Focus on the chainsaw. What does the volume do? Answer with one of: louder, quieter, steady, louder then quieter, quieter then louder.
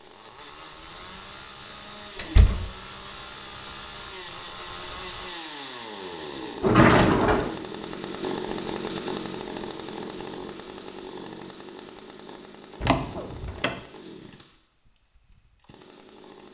louder then quieter.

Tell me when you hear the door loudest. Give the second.
7 s.